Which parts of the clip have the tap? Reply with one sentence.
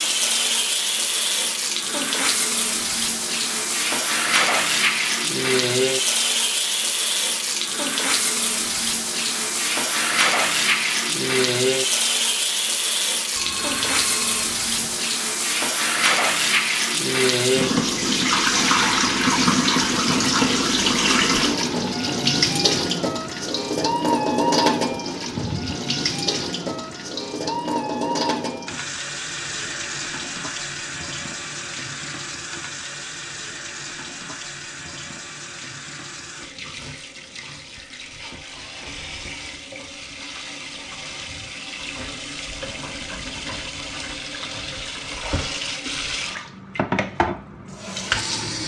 The tap can be heard from 0.0 to 48.6 s.